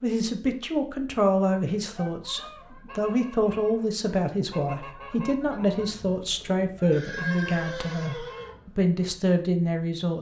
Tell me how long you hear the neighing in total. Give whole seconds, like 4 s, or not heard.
2 s.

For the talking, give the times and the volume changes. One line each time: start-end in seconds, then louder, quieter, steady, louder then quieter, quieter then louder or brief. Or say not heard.
0.0-10.1 steady.